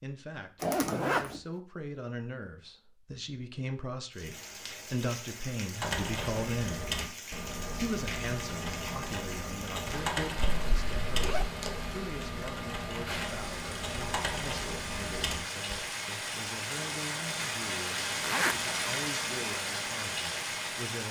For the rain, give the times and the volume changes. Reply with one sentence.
You can hear the rain from 4.1 to 21.0 s, getting louder.